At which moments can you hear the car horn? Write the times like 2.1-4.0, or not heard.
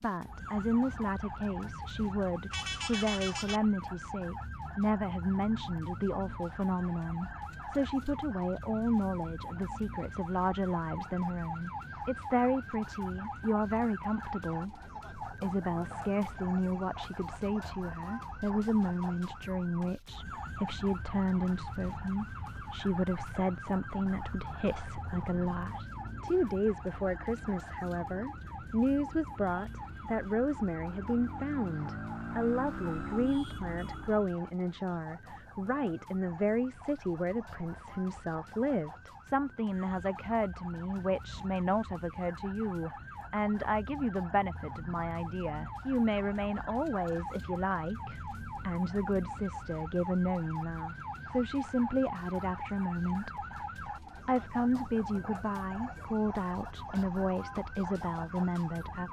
2.5-3.7.